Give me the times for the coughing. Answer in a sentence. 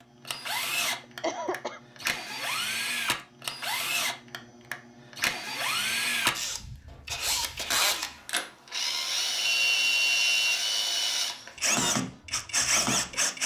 The coughing can be heard from 1.0 to 1.8 s.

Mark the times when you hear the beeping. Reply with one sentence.
The beeping can be heard from 9.3 to 10.4 s.